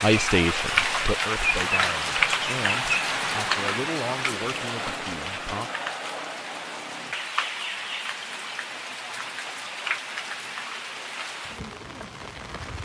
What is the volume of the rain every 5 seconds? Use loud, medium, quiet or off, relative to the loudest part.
loud, medium, medium.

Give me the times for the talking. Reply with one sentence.
The talking can be heard from 0.0 to 5.7 s.